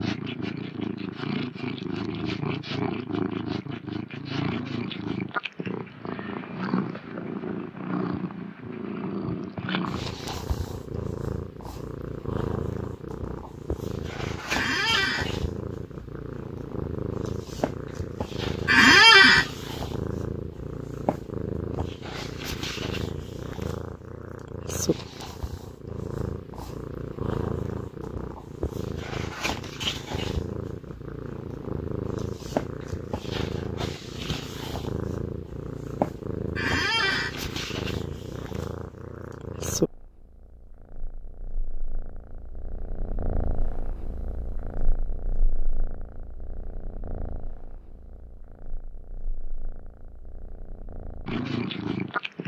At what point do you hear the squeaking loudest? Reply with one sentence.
The volume of the squeaking peaks at 19 seconds.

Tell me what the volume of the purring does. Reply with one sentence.
The loudness of the purring goes down.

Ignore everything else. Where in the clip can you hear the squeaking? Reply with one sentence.
The squeaking can be heard from 14.5 to 15.3 s, from 18.6 to 19.4 s and from 36.5 to 37.4 s.